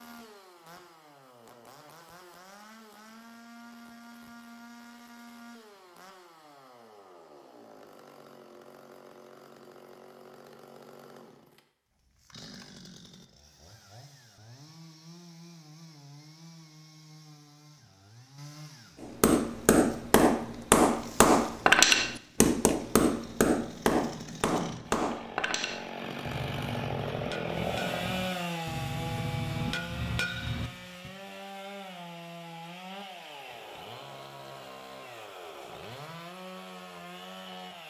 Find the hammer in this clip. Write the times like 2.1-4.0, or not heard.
19.0-31.1.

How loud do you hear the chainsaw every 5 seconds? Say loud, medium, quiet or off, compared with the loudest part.
quiet, quiet, quiet, quiet, medium, loud, medium, medium.